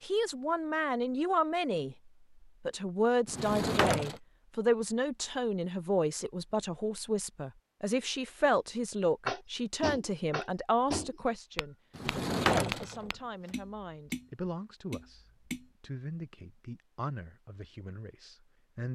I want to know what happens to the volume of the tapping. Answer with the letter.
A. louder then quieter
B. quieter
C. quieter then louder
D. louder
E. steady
B.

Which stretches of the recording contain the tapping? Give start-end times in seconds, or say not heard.
9.2-15.7.